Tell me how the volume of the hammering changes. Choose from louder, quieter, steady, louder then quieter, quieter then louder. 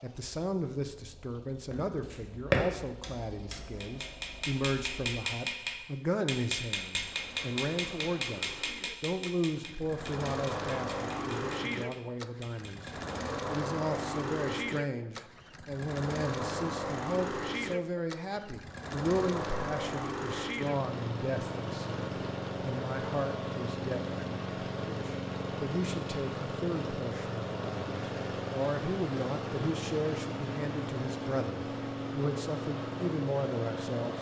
quieter.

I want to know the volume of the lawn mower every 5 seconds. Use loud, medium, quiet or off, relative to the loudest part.
quiet, quiet, loud, loud, loud, loud, loud.